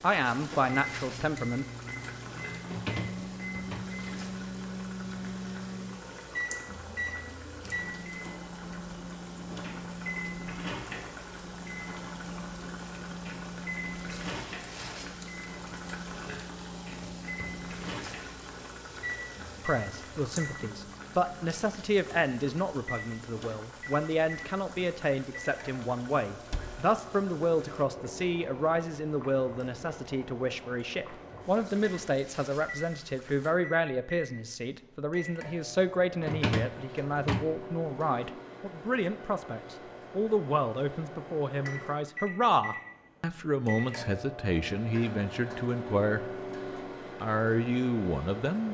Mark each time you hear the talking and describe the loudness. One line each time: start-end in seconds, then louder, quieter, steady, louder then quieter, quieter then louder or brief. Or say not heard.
0.0-1.6 brief
19.6-46.2 steady
47.2-48.6 brief.